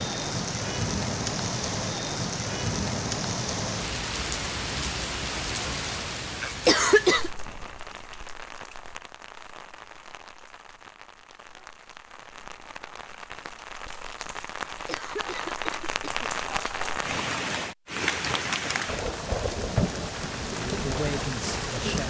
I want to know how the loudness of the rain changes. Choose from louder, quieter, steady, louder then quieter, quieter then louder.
quieter then louder.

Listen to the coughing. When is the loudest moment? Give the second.
7 s.